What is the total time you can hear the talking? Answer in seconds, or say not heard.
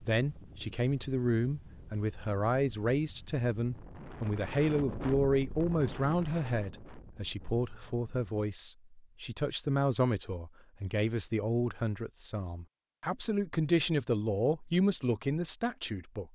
16 s.